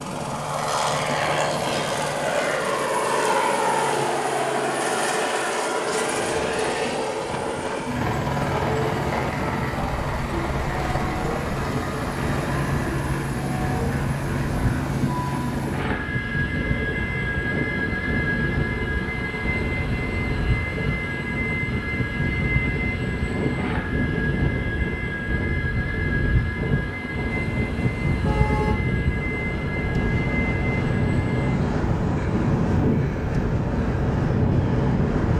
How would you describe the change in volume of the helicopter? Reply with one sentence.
The volume of the helicopter goes down.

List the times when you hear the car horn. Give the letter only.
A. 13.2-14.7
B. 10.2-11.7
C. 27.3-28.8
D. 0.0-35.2
C.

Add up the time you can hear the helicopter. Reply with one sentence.
The helicopter can be heard for 35 seconds in total.